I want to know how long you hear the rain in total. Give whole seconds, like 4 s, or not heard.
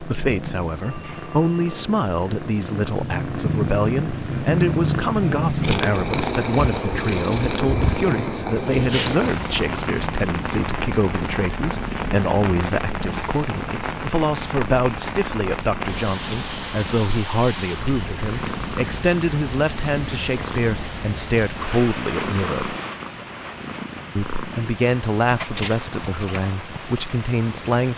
19 s.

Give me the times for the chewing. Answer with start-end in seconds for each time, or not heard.
not heard.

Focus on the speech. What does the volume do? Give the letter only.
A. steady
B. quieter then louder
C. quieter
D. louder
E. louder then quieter
A.